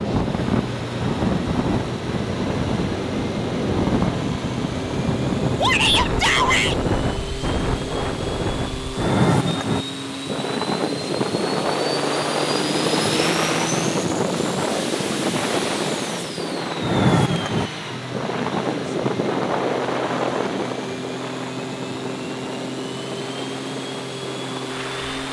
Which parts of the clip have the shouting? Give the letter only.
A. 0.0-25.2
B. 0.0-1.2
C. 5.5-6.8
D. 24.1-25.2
C.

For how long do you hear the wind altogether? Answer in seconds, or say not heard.
25 s.